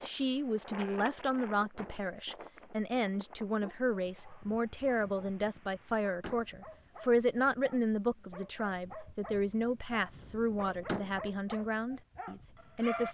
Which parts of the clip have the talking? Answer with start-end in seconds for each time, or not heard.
0.0-13.0.